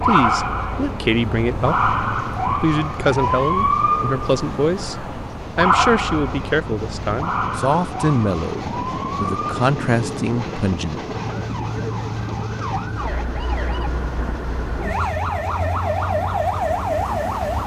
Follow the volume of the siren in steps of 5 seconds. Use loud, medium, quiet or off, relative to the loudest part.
loud, loud, medium, loud.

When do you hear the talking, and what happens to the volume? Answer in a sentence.
You can hear the talking from 0.0 to 11.0 s, at a steady volume.